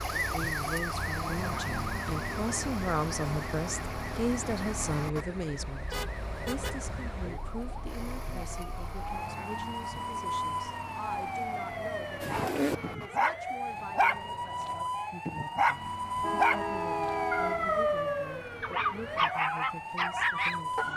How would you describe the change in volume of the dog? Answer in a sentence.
The volume of the dog stays about the same.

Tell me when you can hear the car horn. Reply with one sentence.
The car horn can be heard from 5.9 to 6.8 s and from 16.2 to 18.0 s.